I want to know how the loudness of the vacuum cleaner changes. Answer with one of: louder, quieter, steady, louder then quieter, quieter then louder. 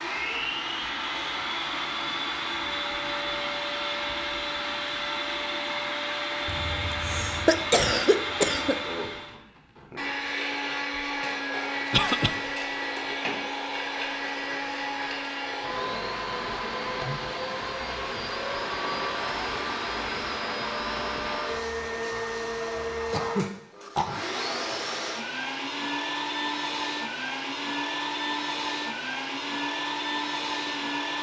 steady.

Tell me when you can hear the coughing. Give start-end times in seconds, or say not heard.
6.5-8.8, 11.9-12.3, 23.1-24.2.